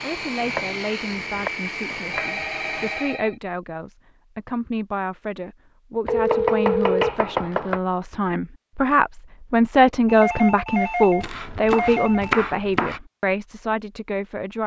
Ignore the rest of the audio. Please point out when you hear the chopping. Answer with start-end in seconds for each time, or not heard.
0.3-2.9, 6.0-7.8, 11.2-13.0.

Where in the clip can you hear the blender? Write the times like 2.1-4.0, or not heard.
0.0-3.2.